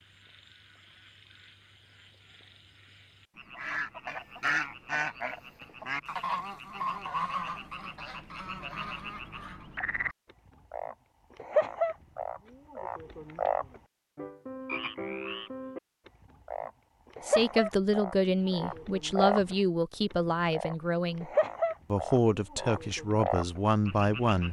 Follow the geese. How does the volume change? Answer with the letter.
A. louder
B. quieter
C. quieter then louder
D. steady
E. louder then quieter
B.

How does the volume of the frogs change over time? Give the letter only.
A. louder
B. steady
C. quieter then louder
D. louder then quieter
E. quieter
A.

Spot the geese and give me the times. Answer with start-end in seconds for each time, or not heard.
3.5-9.8.